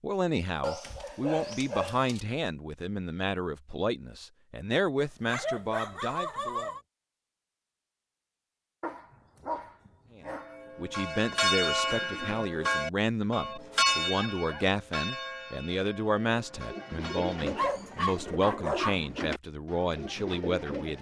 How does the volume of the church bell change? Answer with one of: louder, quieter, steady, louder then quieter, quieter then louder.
quieter.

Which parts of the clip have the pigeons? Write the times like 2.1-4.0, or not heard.
16.2-20.9.